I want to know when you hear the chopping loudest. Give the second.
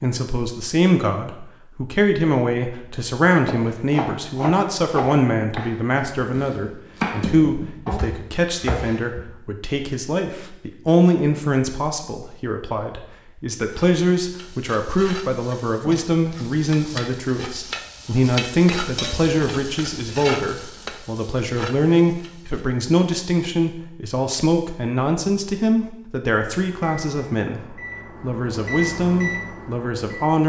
7 s.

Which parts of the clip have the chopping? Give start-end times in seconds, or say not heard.
3.5-9.2.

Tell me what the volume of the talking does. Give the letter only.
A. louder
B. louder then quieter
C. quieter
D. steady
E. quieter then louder
D.